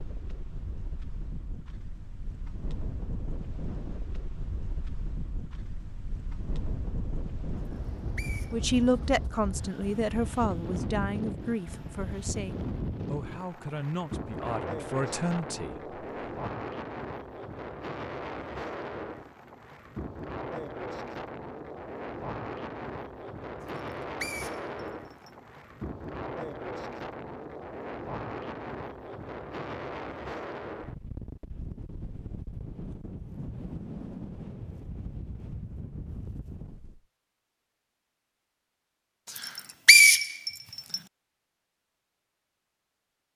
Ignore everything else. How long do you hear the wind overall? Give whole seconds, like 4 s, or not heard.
37 s.